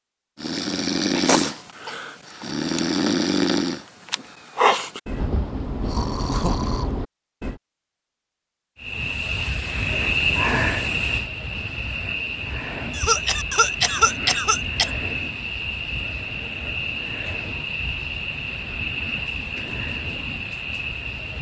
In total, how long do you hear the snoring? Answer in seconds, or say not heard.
7 s.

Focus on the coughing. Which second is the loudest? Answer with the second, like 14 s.
14 s.